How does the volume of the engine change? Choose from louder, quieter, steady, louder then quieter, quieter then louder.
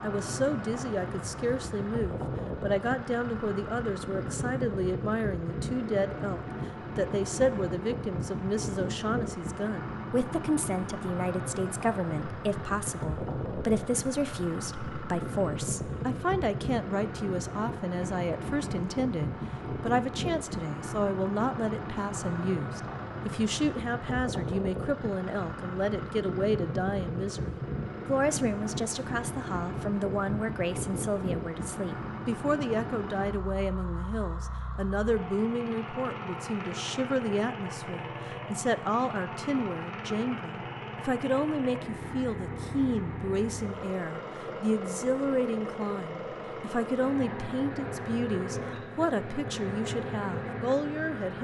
steady.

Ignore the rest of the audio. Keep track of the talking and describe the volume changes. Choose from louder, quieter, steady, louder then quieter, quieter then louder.
steady.